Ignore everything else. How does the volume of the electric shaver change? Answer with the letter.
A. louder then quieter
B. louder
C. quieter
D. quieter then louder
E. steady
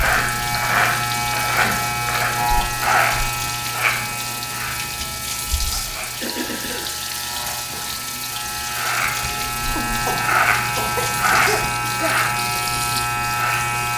D.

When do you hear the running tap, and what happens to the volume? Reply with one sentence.
The running tap can be heard from 0.0 to 13.9 s, at a steady volume.